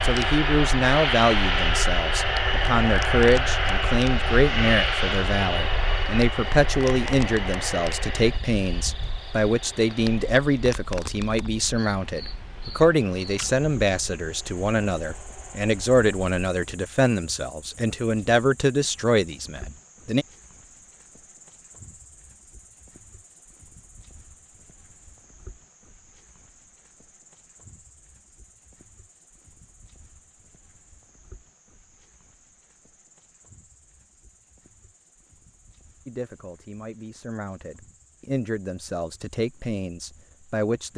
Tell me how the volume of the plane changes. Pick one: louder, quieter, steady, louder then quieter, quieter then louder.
quieter.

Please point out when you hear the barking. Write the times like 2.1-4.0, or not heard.
not heard.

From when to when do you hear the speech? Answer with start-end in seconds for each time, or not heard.
0.0-20.2, 36.0-40.9.